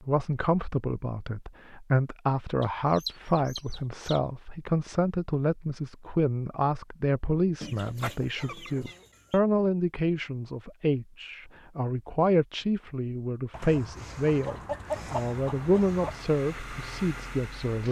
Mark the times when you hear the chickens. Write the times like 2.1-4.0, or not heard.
2.6-4.2, 7.6-9.4, 13.5-16.3.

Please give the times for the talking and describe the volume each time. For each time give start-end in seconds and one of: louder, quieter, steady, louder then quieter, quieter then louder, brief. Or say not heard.
0.0-17.8 steady.